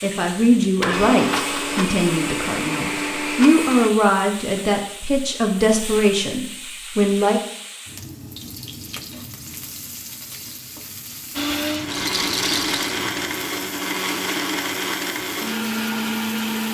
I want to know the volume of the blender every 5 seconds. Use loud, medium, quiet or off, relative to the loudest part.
loud, off, loud, loud.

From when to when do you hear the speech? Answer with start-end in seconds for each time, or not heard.
0.0-7.4.